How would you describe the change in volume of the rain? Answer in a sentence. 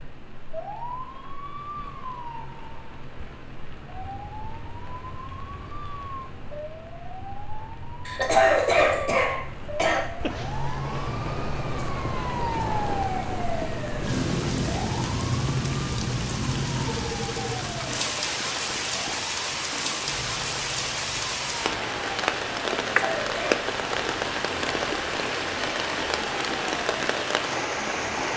The volume of the rain goes up.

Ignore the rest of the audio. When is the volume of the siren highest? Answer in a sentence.
The volume of the siren peaks at 13 seconds.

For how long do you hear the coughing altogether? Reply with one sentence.
You can hear the coughing for 3 seconds altogether.